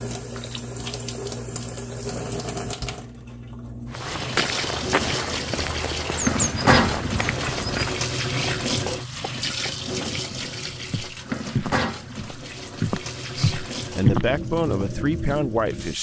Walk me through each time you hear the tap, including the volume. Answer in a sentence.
The tap can be heard from 0.0 to 15.9 s, getting louder then quieter.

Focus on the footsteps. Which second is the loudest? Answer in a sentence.
The loudest moment of the footsteps is at 14 seconds.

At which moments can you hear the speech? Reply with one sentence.
The speech can be heard from 13.3 to 15.9 s.